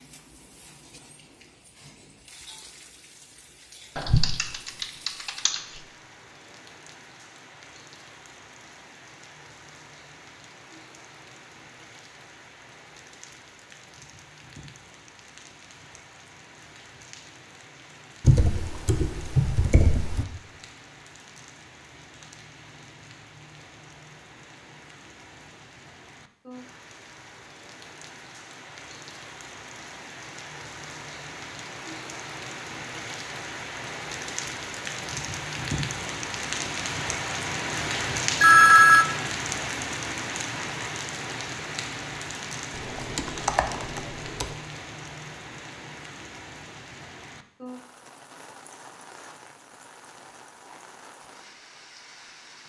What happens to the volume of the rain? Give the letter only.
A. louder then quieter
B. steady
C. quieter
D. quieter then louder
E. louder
A.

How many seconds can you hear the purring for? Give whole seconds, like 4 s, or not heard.
not heard.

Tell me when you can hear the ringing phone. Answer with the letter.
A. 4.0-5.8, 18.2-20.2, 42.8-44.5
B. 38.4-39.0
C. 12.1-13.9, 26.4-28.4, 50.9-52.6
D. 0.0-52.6
B.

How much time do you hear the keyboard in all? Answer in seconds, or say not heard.
6 s.